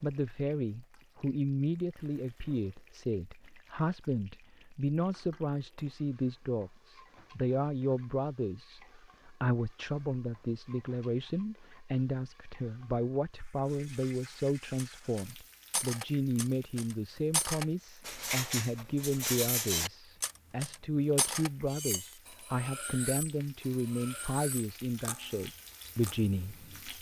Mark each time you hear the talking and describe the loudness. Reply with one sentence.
You can hear the talking from 0.0 to 26.9 s, at a steady volume.